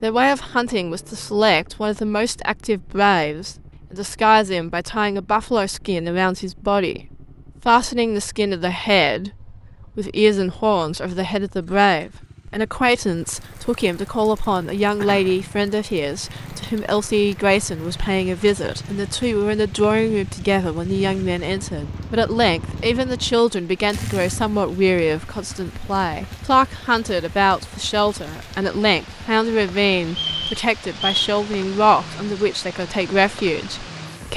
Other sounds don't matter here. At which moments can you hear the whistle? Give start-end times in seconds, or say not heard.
30.1-31.3.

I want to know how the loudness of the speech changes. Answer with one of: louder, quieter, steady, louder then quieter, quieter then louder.
steady.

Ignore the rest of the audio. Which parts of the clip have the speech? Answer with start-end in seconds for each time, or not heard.
0.0-34.3.